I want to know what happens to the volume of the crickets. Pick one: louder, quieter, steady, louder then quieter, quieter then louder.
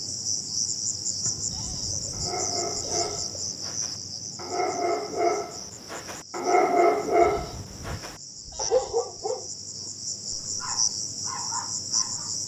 quieter then louder.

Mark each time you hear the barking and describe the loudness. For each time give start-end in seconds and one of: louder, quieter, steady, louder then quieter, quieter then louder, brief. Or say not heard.
2.1-12.3 louder then quieter.